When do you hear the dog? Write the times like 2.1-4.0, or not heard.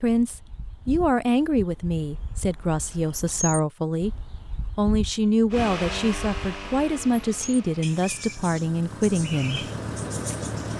not heard.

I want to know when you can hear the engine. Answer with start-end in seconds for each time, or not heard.
5.5-10.7.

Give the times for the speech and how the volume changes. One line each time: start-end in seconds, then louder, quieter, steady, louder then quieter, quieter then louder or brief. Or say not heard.
0.0-9.7 steady.